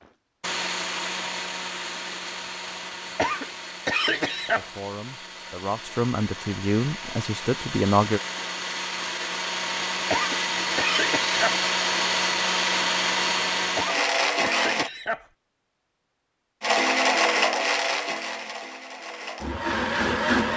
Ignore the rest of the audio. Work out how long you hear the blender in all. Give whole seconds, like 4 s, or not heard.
19 s.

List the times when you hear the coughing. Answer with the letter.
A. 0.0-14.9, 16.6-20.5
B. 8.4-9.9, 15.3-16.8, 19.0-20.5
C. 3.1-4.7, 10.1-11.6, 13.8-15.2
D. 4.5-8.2
C.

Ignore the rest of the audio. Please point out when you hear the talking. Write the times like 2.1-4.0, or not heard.
4.5-8.2.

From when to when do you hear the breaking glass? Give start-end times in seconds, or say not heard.
not heard.